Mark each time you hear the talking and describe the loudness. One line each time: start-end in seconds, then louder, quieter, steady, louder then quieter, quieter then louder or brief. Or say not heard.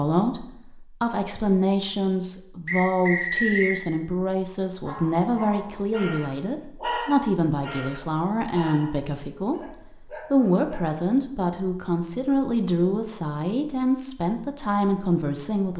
0.0-15.7 steady.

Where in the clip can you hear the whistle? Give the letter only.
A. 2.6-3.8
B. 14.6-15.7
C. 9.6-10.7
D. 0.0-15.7
A.